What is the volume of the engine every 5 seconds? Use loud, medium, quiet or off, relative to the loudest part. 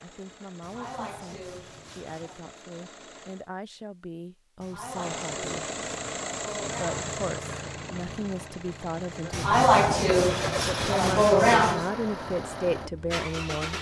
quiet, loud, loud.